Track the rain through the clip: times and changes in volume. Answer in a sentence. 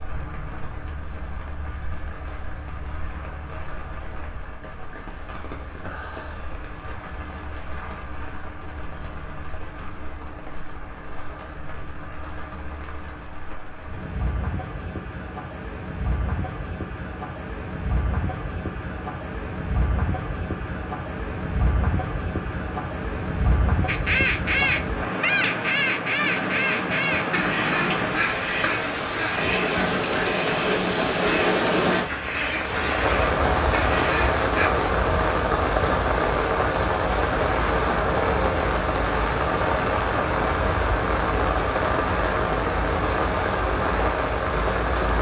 The rain can be heard from 0.0 to 45.1 s, getting louder.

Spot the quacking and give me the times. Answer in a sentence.
You can hear the quacking from 23.9 to 34.7 s.